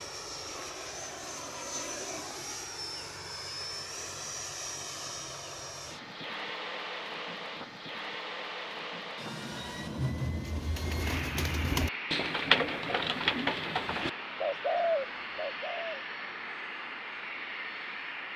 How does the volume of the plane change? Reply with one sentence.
The volume of the plane stays about the same.